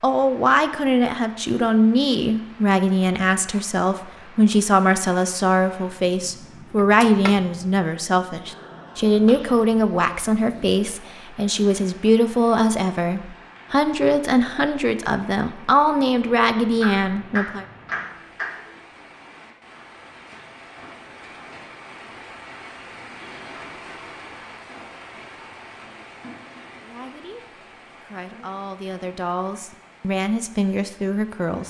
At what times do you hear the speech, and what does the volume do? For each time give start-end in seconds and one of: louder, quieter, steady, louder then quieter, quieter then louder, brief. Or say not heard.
0.0-17.6 steady
26.8-31.6 louder.